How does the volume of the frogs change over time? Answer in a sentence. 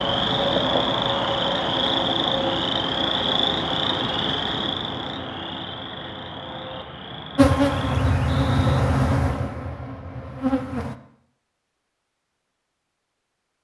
The volume of the frogs goes down.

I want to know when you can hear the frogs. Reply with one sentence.
The frogs can be heard from 0.0 to 8.8 s.